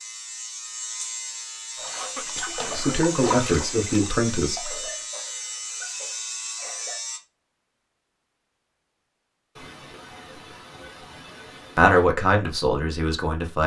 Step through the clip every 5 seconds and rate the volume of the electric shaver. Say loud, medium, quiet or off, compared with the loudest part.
loud, loud, off.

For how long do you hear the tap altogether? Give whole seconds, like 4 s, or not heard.
3 s.